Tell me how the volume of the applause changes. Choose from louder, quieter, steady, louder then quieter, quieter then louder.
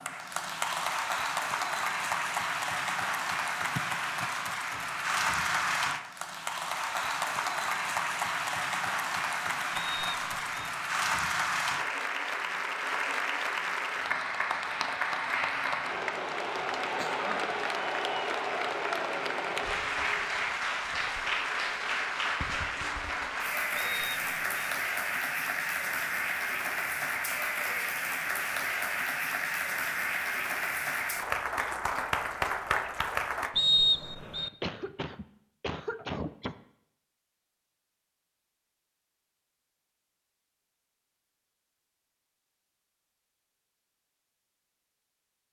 steady.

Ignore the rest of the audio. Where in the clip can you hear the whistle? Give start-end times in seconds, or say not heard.
9.8-10.7, 23.8-24.7, 33.5-34.5.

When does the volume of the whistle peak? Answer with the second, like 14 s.
34 s.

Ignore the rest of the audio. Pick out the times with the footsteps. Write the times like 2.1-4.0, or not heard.
not heard.